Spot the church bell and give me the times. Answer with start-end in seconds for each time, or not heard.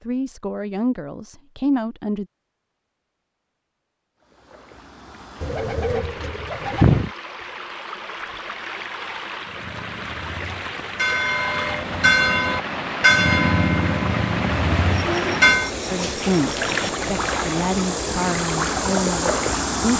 9.4-15.7.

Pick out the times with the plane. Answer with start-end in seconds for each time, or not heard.
not heard.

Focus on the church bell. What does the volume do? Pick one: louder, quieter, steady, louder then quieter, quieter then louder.
louder then quieter.